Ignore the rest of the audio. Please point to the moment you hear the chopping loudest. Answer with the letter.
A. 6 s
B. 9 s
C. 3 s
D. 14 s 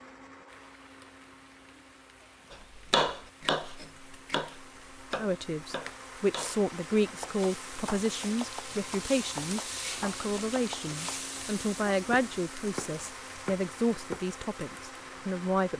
C.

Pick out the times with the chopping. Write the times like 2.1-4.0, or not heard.
2.5-14.2.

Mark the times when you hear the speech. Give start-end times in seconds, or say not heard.
5.2-15.7.